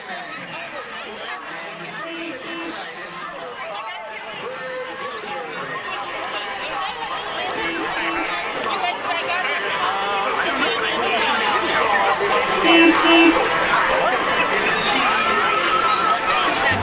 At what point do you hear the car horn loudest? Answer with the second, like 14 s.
13 s.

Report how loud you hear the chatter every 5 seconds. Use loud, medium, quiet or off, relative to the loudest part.
quiet, medium, loud, loud.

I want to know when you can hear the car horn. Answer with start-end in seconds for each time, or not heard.
2.0-2.9, 7.5-8.3, 12.6-13.4.